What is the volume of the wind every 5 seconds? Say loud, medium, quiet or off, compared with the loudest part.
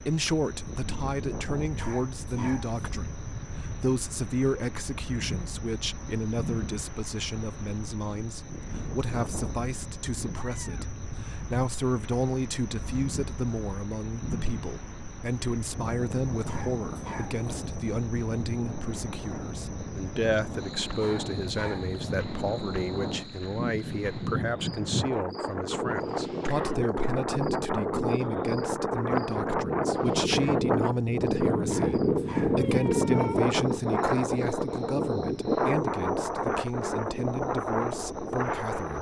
quiet, quiet, quiet, quiet, medium, loud, loud, loud.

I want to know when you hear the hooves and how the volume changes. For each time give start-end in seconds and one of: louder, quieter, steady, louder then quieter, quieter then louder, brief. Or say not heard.
not heard.